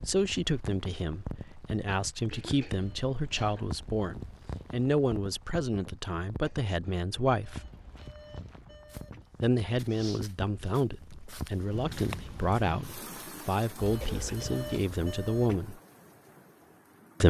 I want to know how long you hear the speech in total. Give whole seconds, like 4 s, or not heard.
14 s.